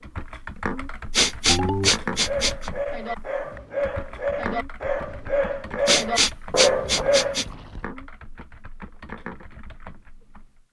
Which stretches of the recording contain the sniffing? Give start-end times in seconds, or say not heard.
1.1-2.7, 5.8-7.5.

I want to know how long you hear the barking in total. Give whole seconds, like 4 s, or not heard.
5 s.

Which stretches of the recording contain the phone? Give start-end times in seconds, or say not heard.
1.4-1.9, 6.5-7.8.